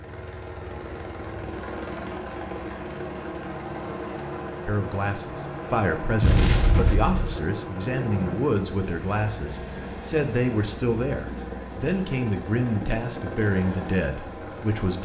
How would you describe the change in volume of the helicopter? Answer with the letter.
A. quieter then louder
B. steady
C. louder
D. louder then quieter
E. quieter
B.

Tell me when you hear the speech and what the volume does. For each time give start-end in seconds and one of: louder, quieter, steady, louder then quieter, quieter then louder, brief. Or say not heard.
4.7-15.0 steady.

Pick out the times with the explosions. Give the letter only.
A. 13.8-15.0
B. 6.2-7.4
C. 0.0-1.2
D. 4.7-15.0
B.